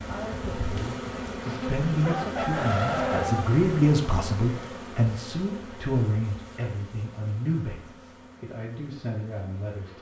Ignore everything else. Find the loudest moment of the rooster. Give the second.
3 s.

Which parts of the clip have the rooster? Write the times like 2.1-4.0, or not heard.
1.4-3.5.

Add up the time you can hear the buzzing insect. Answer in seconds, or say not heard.
10 s.